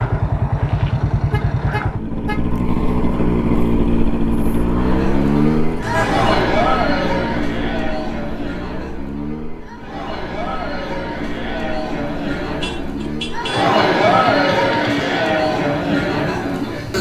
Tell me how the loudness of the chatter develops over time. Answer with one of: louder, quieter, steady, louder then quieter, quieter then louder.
quieter then louder.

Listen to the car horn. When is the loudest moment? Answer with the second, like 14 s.
6 s.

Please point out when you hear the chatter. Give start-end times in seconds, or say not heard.
4.8-16.9.